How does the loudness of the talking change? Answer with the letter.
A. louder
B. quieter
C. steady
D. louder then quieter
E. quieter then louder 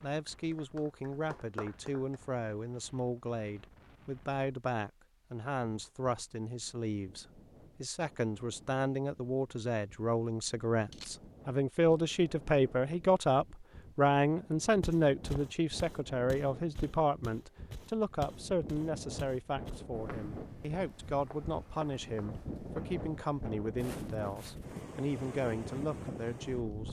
D.